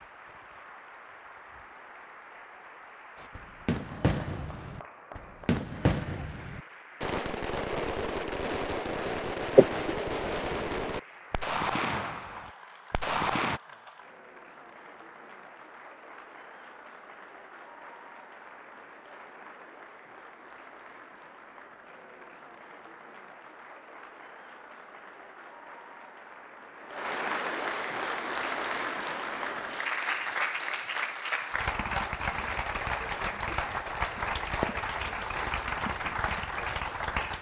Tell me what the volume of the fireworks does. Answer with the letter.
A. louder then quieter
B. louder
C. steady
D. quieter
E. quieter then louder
C.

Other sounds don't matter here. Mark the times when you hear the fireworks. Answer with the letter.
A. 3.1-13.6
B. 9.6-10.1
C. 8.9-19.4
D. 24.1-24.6
A.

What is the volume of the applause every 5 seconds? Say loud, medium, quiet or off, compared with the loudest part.
quiet, quiet, quiet, quiet, quiet, loud, loud, loud.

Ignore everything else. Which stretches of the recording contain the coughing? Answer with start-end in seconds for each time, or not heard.
9.6-10.1.